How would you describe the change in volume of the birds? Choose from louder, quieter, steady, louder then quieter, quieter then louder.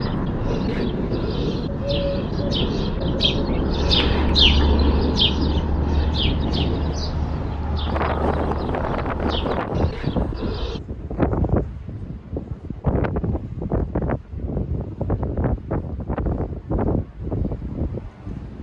louder then quieter.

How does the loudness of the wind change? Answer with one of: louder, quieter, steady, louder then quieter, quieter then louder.
steady.